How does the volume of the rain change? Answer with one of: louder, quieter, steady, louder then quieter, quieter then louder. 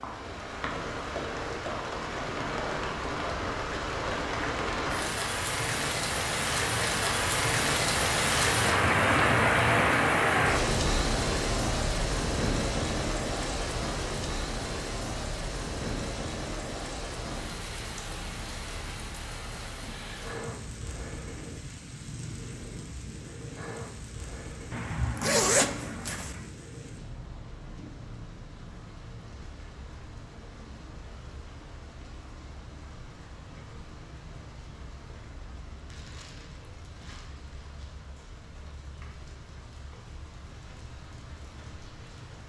quieter.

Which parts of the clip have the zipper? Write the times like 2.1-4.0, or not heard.
24.7-26.4.